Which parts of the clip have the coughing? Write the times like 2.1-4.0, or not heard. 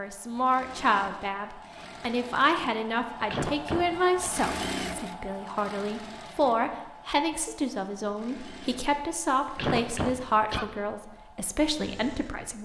3.2-4.3, 9.6-10.7.